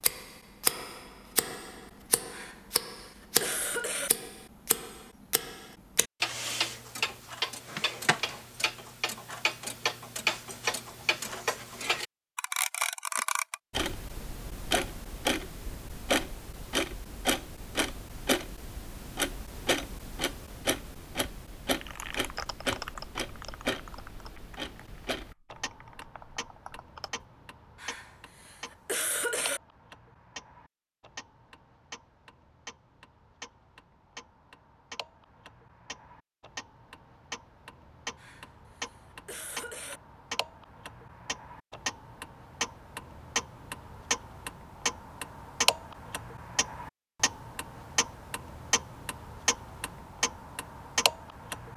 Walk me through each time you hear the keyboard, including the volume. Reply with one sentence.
The keyboard can be heard from 21.6 to 27.2 s, getting quieter then louder.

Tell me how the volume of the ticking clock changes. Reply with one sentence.
The volume of the ticking clock goes down, then up.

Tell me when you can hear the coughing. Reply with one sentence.
The coughing can be heard from 2.3 to 4.1 s, from 27.8 to 29.6 s and from 38.1 to 40.0 s.